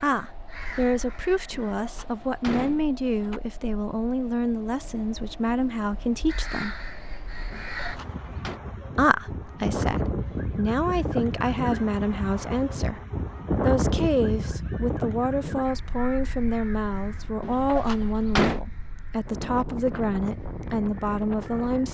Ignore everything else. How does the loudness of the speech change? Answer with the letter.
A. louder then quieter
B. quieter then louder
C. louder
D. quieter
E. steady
E.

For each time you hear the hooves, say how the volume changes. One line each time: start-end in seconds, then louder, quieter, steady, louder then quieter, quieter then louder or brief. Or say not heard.
not heard.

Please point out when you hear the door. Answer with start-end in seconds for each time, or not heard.
1.5-3.4, 7.5-8.6, 17.4-18.6.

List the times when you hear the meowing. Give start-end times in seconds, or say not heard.
not heard.